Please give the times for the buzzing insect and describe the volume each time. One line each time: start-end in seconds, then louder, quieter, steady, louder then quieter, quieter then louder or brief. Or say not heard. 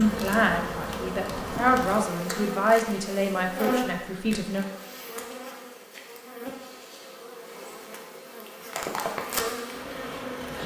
0.0-10.6 quieter then louder.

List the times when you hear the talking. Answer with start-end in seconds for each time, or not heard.
0.0-4.7.